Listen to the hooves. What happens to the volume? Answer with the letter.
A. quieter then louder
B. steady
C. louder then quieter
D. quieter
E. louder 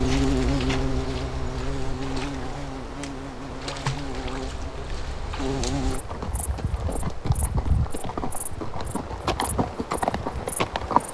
E.